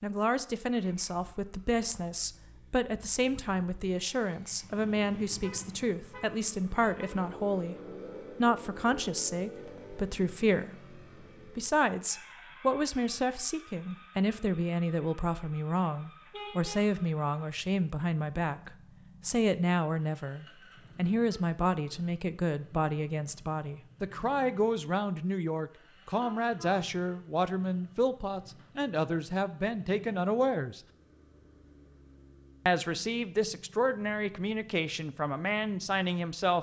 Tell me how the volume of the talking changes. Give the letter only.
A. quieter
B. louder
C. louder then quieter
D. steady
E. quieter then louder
D.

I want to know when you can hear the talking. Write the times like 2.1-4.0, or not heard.
0.0-7.8, 8.3-30.8, 32.6-36.5.